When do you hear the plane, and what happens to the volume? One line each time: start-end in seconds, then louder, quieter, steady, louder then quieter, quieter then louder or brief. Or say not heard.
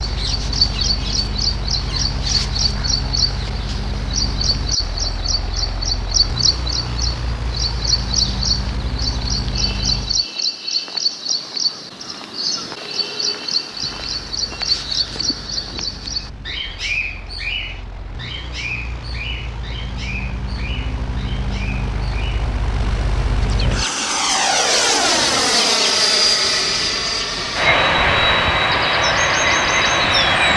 0.0-10.2 steady
13.8-30.5 louder.